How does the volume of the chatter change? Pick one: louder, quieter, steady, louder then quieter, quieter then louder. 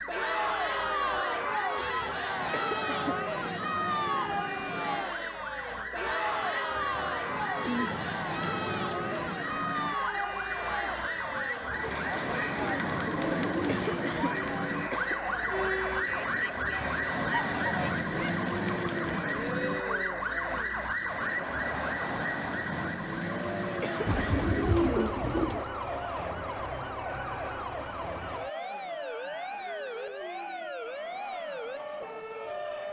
quieter.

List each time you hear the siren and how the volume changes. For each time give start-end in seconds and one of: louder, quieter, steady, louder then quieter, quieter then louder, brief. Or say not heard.
0.0-32.8 louder then quieter.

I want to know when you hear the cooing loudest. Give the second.
25 s.